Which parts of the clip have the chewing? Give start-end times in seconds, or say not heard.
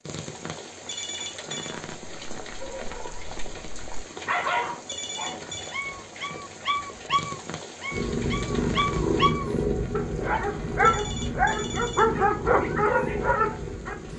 not heard.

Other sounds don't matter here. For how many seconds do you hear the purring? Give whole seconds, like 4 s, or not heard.
6 s.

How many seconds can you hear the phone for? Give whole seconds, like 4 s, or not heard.
3 s.